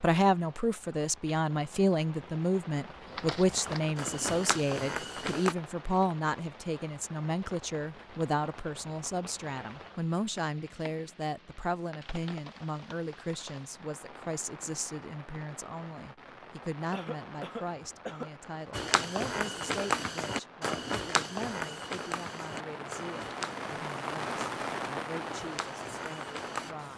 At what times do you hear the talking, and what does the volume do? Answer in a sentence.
You can hear the talking from 0.0 to 26.9 s, getting quieter.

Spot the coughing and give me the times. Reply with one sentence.
The coughing can be heard from 16.9 to 18.3 s.